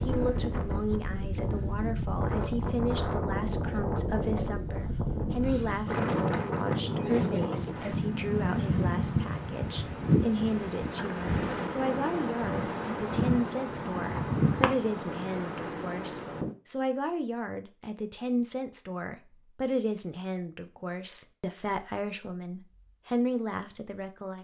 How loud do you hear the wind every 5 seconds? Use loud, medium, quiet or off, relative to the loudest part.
loud, loud, loud, medium, off.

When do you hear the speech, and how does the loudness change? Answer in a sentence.
The speech can be heard from 0.1 to 24.3 s, at a steady volume.